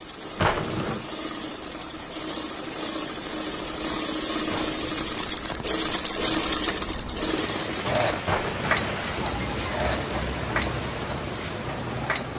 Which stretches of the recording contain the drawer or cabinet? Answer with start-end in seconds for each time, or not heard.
0.3-1.1, 4.5-5.1, 8.2-9.1.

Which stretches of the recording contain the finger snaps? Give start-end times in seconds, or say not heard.
not heard.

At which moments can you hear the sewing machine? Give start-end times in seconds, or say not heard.
0.0-12.3.